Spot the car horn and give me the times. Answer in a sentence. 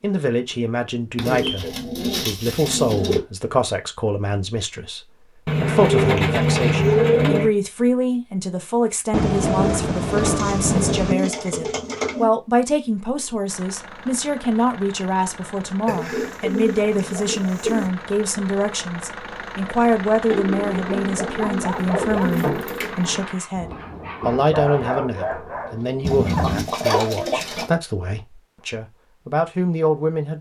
The car horn can't be heard in this clip.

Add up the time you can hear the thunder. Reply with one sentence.
You can hear the thunder for 5 seconds altogether.